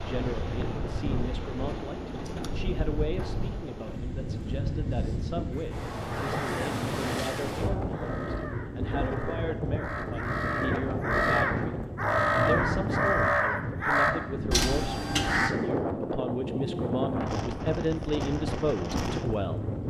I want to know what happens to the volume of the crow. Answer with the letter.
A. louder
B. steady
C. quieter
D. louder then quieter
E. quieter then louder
A.